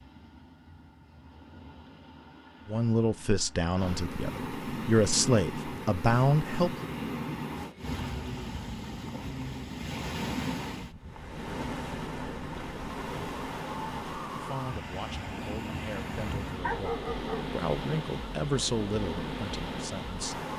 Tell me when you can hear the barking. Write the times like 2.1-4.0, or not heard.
16.6-17.6.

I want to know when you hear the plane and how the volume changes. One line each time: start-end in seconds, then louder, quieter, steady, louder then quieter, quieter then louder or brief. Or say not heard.
not heard.